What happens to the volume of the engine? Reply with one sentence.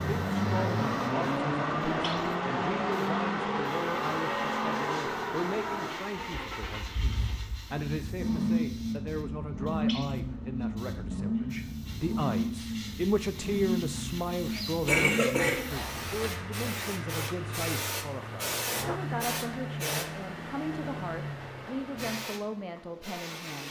The volume of the engine goes down.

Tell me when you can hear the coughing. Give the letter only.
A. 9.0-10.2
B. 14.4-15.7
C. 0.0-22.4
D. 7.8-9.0
B.